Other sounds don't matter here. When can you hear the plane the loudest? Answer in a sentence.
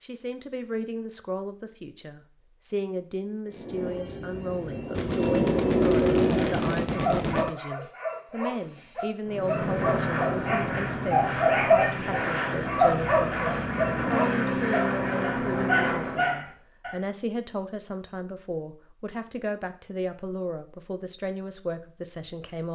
The loudest moment of the plane is at 6 seconds.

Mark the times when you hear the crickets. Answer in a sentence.
The crickets can't be heard in this clip.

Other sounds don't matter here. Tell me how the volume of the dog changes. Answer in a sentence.
The volume of the dog goes up, then down.